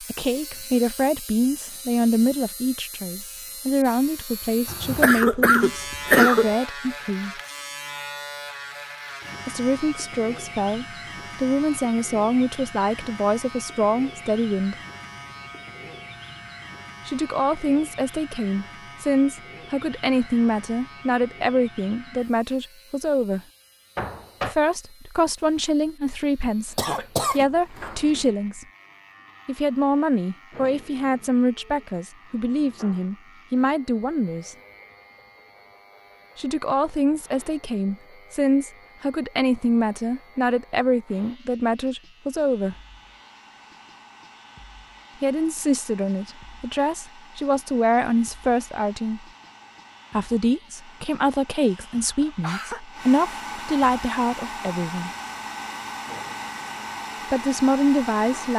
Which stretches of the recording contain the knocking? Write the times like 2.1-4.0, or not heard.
23.9-24.6.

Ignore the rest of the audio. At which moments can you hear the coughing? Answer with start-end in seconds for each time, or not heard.
4.7-6.5, 26.8-28.2, 51.6-52.8.